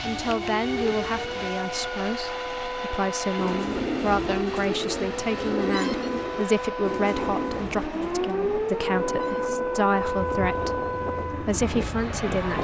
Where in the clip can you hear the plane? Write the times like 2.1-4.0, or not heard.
0.0-12.5.